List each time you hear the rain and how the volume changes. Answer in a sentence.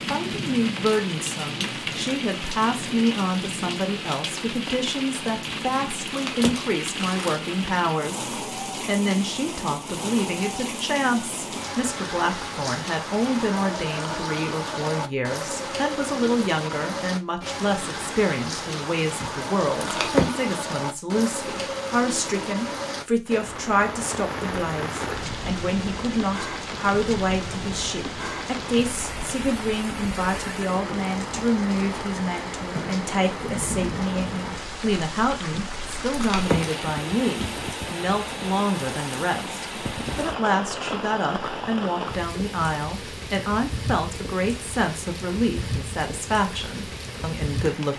You can hear the rain from 0.0 to 47.9 s, at a steady volume.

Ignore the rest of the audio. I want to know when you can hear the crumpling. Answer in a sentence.
You can hear the crumpling from 5.5 to 7.4 s, from 19.2 to 20.4 s and from 35.5 to 36.9 s.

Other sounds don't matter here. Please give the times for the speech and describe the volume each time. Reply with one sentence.
The speech can be heard from 0.1 to 47.9 s, at a steady volume.